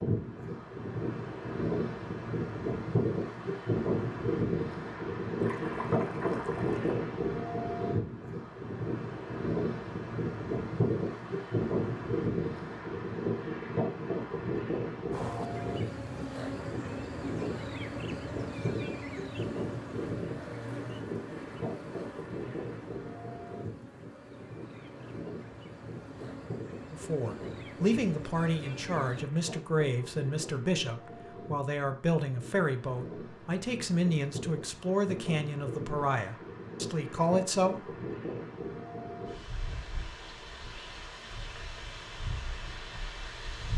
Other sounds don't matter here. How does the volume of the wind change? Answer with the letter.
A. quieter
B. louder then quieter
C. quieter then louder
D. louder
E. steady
A.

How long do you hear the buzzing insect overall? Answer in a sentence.
You can hear the buzzing insect for 14 seconds altogether.